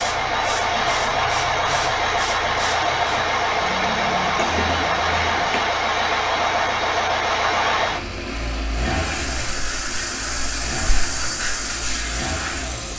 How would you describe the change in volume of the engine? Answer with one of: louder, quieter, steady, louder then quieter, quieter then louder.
quieter.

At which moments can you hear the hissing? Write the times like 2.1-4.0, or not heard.
0.0-3.4, 8.8-12.9.